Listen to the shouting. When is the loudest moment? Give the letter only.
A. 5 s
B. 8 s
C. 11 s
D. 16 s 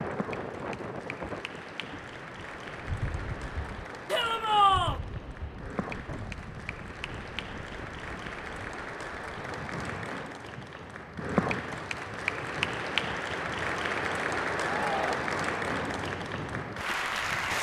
A.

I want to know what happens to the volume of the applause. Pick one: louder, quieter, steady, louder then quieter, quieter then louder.
louder.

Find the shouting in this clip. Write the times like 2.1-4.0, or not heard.
4.1-5.0, 14.8-15.2.